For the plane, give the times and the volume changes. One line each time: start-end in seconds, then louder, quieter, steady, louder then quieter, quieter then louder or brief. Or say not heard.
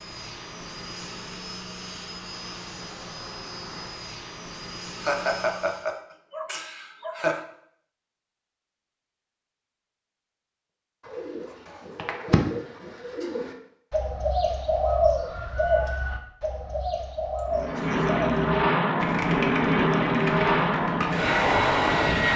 0.0-5.9 steady
17.4-22.3 steady.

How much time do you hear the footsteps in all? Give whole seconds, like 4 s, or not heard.
not heard.